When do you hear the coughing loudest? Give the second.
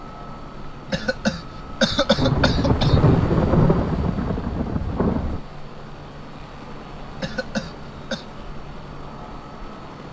2 s.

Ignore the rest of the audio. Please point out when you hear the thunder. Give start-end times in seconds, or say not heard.
2.1-5.4.